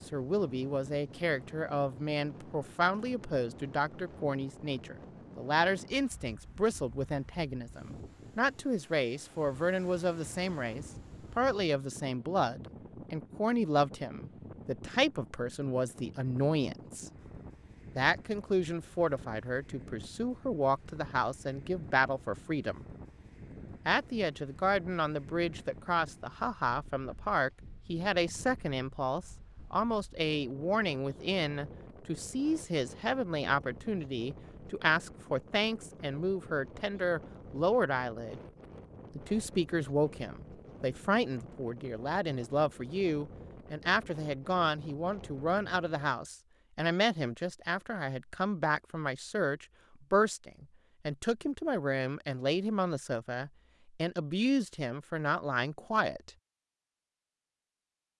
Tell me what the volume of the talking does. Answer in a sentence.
The volume of the talking stays about the same.